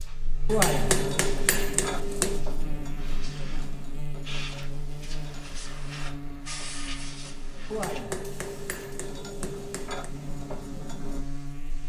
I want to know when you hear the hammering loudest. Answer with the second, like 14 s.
1 s.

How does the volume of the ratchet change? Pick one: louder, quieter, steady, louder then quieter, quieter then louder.
quieter then louder.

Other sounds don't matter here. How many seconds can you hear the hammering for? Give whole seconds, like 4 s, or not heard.
4 s.